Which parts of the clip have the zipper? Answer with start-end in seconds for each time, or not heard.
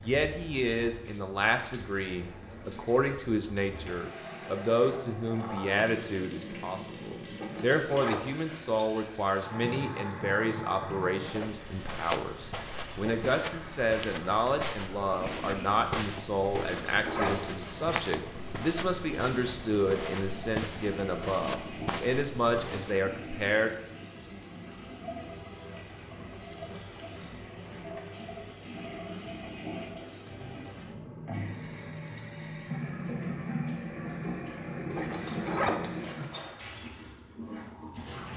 7.4-8.9, 16.6-17.9, 35.0-36.5.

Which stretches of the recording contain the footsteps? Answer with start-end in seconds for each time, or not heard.
11.2-23.0.